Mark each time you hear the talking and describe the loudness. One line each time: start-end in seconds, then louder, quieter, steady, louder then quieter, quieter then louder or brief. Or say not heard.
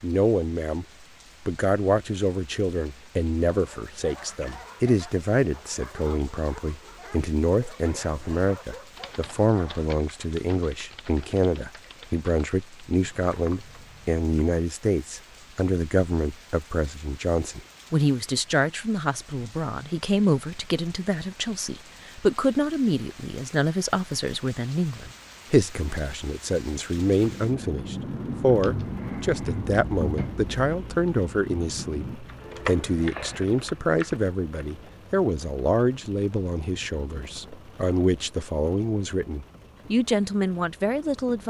0.0-0.8 brief
1.4-41.4 steady.